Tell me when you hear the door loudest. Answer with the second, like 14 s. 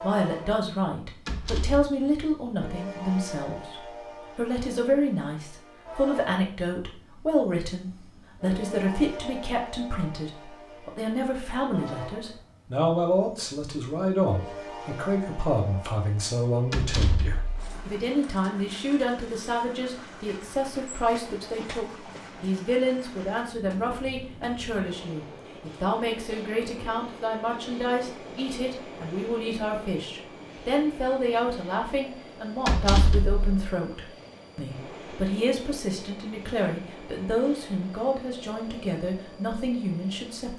33 s.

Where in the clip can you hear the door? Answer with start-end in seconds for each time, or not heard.
1.2-1.9, 16.7-17.8, 32.6-33.5.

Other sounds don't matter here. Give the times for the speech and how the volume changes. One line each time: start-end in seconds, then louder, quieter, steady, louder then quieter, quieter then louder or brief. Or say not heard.
0.0-40.5 steady.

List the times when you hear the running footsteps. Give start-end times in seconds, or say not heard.
not heard.